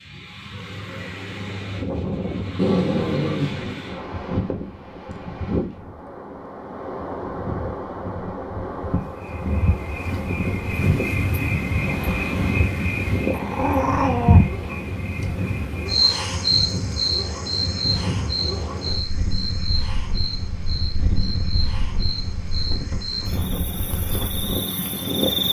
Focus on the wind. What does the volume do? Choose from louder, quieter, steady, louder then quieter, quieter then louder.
steady.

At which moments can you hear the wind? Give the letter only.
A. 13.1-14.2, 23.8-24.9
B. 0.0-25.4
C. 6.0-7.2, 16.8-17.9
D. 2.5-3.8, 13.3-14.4
B.